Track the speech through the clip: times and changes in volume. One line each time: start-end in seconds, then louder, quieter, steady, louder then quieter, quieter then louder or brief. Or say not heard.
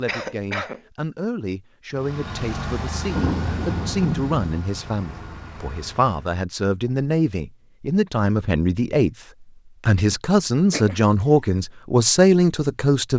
0.0-13.1 louder.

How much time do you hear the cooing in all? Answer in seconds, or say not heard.
not heard.